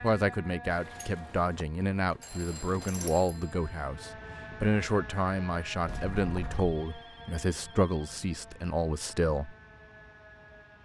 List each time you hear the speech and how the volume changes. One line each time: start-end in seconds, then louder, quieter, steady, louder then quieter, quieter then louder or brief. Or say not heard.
0.0-9.6 steady.